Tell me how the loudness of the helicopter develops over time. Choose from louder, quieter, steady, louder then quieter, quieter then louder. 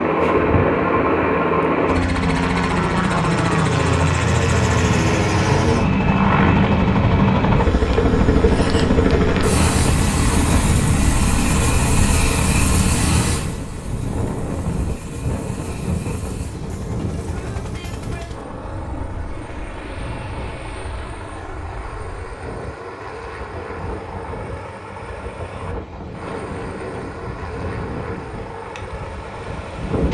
quieter.